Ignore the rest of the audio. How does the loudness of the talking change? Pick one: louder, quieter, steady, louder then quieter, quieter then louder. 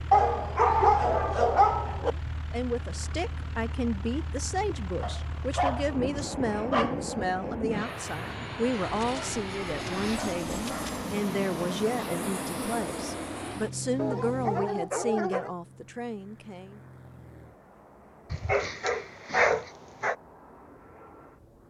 steady.